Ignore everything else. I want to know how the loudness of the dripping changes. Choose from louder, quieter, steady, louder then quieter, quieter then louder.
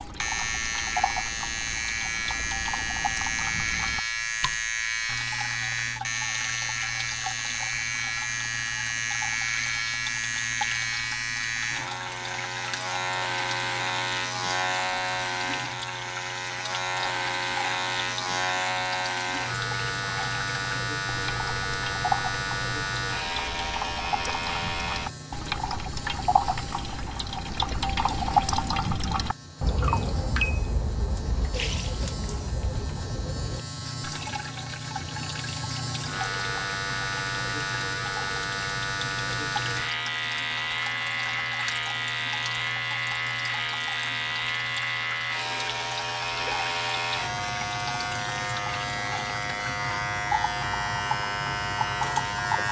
louder then quieter.